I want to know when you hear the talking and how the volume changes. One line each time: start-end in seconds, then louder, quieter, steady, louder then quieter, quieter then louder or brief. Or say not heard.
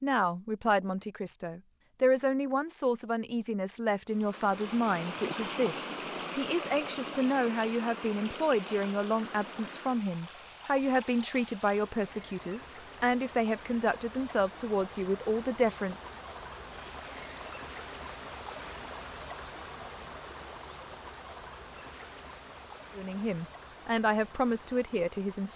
0.0-16.1 steady
22.9-25.5 brief.